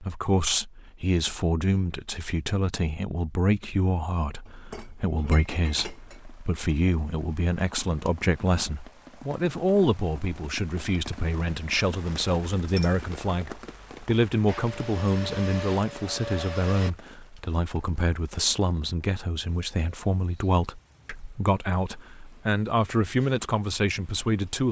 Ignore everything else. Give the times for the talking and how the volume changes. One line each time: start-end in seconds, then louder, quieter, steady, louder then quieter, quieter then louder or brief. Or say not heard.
0.0-24.6 steady.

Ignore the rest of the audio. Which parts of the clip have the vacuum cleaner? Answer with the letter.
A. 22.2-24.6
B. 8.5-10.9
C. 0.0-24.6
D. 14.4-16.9
D.